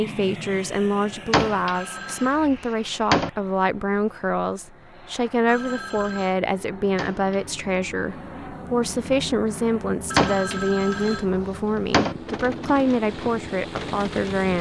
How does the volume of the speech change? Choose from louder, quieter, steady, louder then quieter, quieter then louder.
steady.